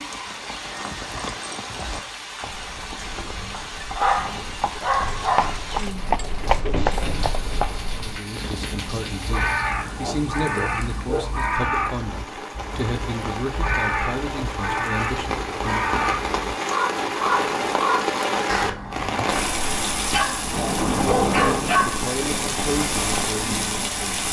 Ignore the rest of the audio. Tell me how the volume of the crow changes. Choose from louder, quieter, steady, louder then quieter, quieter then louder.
steady.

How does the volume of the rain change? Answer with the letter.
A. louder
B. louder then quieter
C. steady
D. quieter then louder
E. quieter
A.